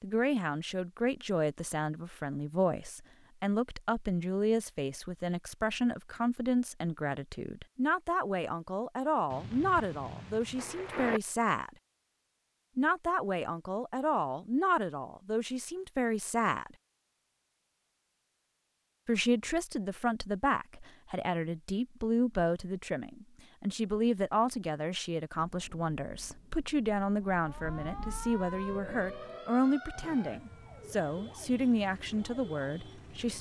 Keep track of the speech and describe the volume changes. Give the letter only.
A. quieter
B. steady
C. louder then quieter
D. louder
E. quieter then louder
B.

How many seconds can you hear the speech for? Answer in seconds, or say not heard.
30 s.